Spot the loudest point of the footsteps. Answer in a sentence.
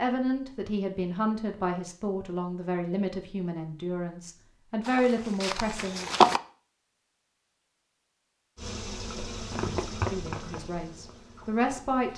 The loudest moment of the footsteps is at 6 seconds.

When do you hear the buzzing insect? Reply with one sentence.
The buzzing insect can be heard from 8.6 to 12.1 s.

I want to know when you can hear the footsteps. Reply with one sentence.
You can hear the footsteps from 4.8 to 6.4 s.